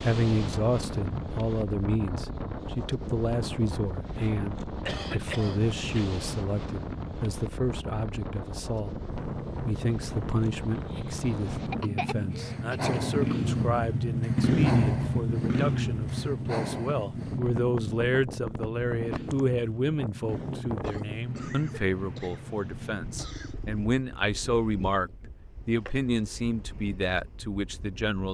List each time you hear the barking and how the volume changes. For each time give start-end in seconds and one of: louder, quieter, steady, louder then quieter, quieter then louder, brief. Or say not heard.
not heard.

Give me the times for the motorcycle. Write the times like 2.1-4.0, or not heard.
9.1-23.9.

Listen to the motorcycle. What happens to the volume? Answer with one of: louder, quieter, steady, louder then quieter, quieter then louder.
louder then quieter.